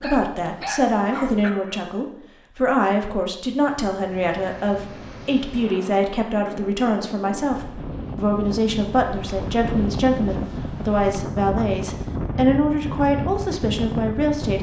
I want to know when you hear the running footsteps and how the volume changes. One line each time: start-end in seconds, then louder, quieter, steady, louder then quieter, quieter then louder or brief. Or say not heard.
not heard.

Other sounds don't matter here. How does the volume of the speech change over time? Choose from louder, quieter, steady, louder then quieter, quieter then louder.
steady.